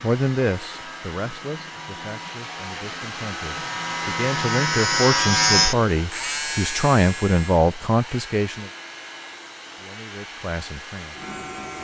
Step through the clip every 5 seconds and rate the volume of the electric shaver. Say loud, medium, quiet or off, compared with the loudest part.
medium, loud, quiet.